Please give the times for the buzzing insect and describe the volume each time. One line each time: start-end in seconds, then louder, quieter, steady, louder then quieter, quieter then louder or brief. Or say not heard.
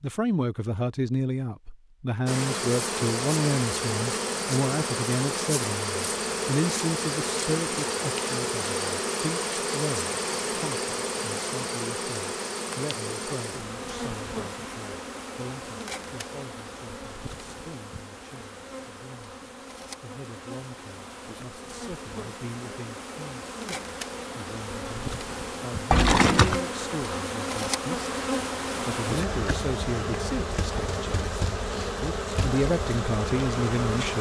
2.2-34.1 quieter then louder.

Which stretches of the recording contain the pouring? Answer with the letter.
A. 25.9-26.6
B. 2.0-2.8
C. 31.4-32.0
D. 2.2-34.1
A.